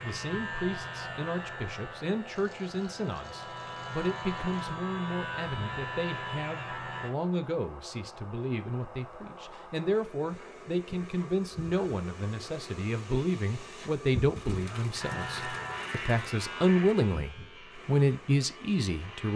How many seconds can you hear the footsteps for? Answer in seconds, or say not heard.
not heard.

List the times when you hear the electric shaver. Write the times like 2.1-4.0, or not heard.
0.0-7.1, 14.9-19.3.